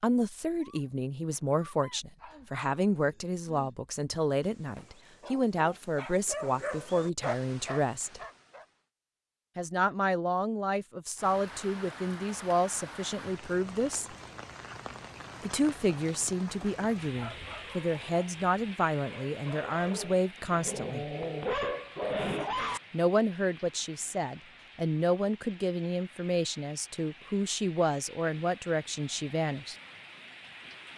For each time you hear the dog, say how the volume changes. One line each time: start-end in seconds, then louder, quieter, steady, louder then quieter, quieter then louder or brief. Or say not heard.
0.6-8.8 louder
17.1-22.8 louder.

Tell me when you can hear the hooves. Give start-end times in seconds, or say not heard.
not heard.